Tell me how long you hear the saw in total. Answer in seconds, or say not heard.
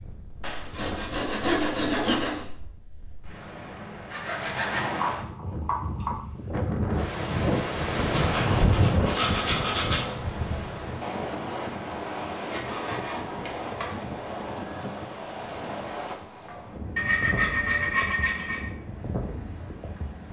9 s.